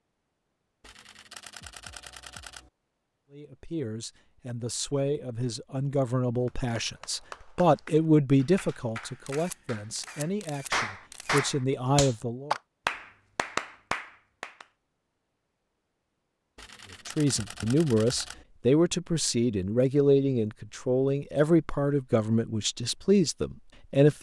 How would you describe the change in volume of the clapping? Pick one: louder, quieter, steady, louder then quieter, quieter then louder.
louder.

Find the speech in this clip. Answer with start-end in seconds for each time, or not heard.
3.3-12.6, 17.1-24.1.